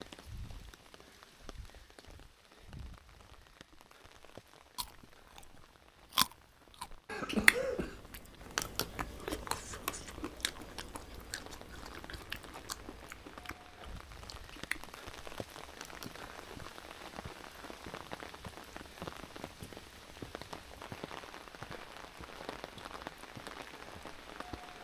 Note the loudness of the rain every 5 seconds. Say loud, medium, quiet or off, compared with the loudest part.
medium, quiet, medium, loud, loud.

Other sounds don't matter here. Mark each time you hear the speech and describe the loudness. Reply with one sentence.
You can't hear the speech here.